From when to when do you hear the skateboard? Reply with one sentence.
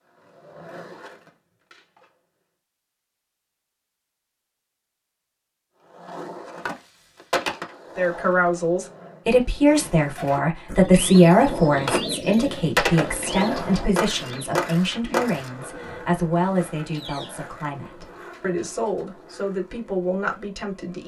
The skateboard can be heard from 0.0 to 2.1 s, from 5.8 to 9.5 s and from 11.3 to 21.0 s.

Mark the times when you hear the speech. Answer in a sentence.
You can hear the speech from 8.0 to 21.0 s.